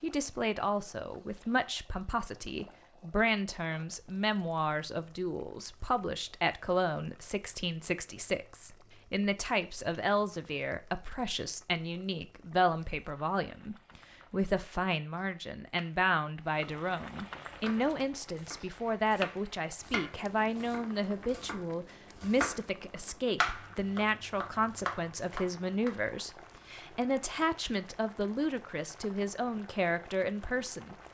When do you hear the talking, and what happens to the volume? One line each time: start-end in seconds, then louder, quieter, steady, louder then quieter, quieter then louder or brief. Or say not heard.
0.0-30.9 steady.